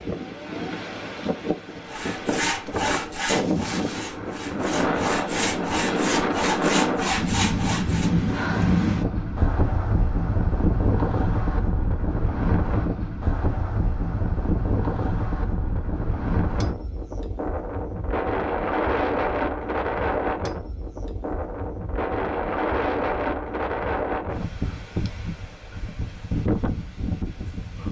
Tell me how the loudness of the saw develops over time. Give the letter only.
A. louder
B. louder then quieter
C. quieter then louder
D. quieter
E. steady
C.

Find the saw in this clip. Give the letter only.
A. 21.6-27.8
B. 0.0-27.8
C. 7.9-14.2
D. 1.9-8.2
D.